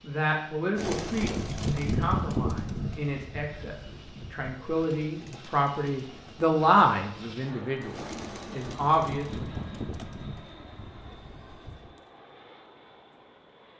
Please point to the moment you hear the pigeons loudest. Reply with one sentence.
The loudest moment of the pigeons is at 2 seconds.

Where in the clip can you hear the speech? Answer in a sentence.
You can hear the speech from 0.0 to 9.2 s.